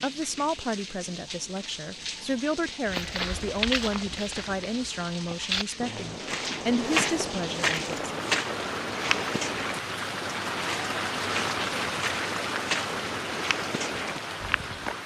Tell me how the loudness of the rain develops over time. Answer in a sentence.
The volume of the rain goes up.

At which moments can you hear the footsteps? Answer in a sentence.
The footsteps can be heard from 2.9 to 14.9 s.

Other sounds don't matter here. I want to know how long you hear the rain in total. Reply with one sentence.
The rain can be heard for 15 seconds in total.